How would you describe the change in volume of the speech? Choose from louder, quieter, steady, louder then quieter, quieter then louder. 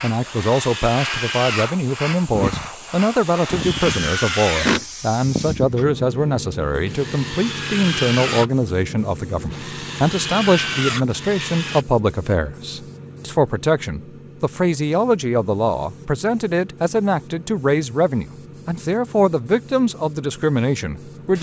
steady.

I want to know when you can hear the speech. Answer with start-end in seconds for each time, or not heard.
0.0-21.3.